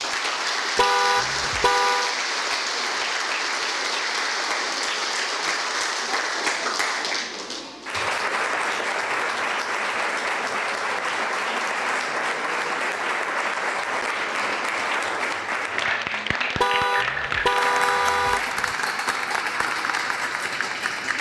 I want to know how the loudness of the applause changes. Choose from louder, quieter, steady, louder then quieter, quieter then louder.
steady.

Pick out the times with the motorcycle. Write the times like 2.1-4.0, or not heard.
not heard.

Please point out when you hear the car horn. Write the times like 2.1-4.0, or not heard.
0.8-2.1, 16.6-18.8.